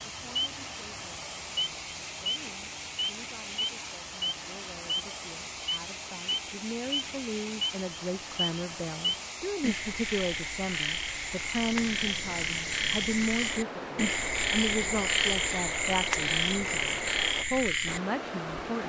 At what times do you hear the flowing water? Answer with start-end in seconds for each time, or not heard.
0.0-18.8.